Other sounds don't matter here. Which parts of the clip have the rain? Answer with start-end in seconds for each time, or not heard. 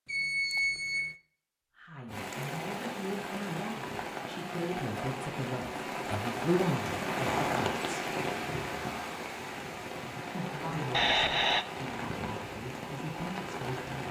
2.0-14.0.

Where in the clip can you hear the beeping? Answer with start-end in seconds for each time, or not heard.
0.1-1.1, 10.9-11.7.